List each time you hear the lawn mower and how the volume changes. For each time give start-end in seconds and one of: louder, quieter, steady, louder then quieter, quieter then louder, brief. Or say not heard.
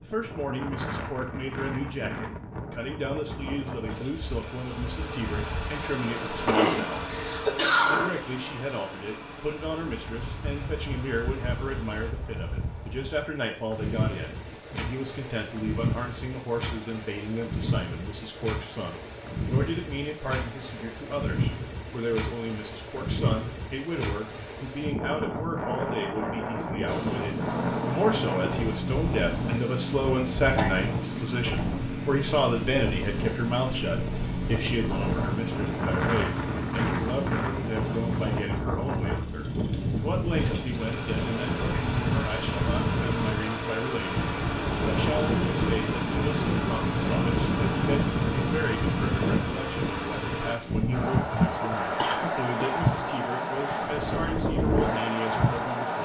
3.4-12.2 louder then quieter
26.9-50.6 steady.